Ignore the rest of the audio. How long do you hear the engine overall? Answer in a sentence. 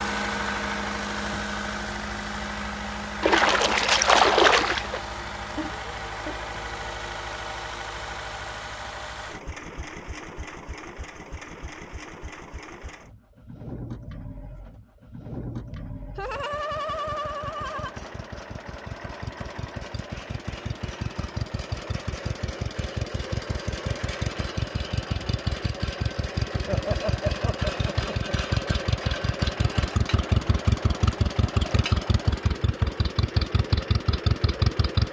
You can hear the engine for 35 seconds altogether.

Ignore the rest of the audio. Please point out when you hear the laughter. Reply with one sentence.
The laughter can be heard from 5.5 to 6.4 s, from 15.7 to 17.9 s and from 26.6 to 28.4 s.